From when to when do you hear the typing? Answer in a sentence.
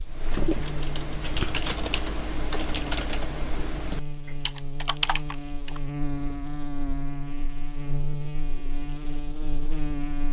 The typing can be heard from 0.1 to 5.8 s.